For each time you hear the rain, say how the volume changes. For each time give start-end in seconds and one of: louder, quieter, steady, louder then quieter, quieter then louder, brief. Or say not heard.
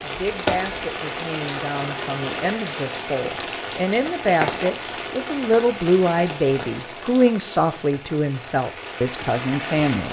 0.0-10.0 quieter.